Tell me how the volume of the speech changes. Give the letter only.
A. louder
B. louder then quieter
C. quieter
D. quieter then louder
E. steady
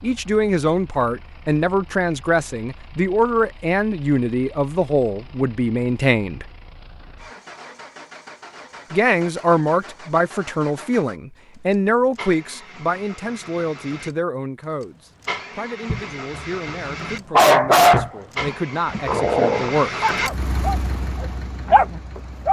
C.